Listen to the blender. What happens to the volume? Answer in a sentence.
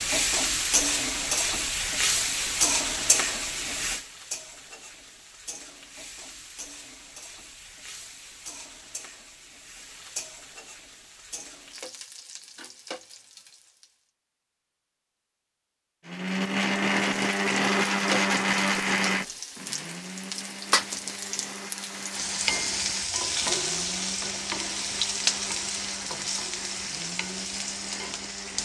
The volume of the blender goes down.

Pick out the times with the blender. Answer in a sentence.
The blender can be heard from 16.1 to 28.6 s.